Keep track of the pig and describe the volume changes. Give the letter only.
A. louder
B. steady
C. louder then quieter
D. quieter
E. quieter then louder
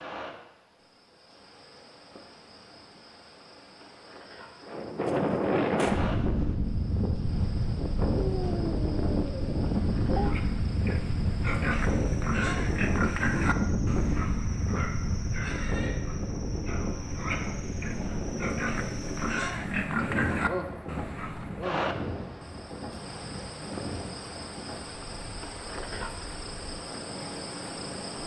E.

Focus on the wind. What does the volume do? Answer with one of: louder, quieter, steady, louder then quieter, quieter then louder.
quieter.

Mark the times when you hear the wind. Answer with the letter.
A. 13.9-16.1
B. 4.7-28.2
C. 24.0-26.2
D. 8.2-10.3
B.